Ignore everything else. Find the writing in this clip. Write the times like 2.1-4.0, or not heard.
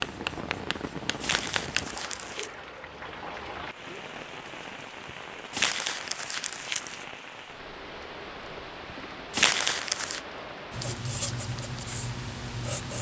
0.0-1.9, 10.7-12.9.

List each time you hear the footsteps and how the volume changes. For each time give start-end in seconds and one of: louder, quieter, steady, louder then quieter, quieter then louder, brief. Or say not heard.
not heard.